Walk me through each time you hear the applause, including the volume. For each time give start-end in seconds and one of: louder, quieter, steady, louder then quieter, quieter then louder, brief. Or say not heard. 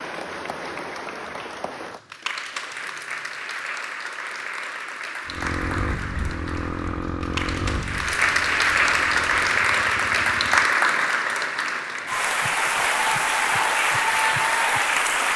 0.0-15.3 louder.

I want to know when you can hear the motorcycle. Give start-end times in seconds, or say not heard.
5.2-10.8.